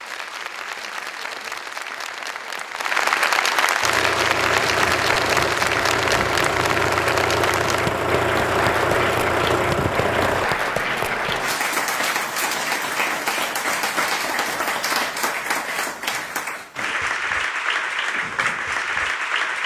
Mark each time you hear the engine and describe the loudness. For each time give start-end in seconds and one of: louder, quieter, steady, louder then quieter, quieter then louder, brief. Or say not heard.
3.8-10.5 steady.